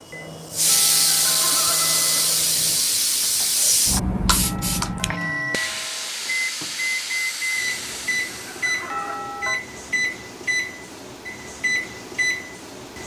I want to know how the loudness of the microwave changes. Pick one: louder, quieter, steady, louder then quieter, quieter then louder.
louder.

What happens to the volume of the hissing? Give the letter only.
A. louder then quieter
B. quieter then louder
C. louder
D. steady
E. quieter
E.